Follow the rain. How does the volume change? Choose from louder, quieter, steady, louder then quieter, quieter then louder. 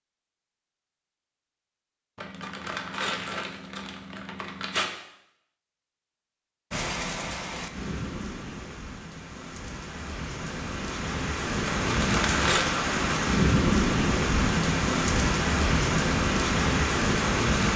louder.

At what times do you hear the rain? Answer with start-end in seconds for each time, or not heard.
6.7-17.7.